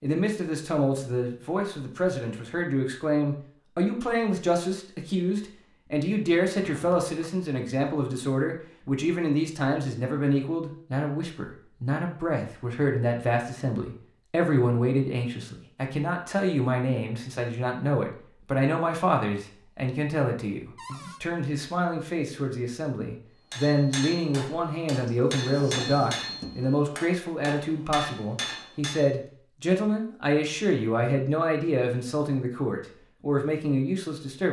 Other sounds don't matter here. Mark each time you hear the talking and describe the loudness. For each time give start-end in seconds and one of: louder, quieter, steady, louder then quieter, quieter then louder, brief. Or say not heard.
0.0-34.4 steady.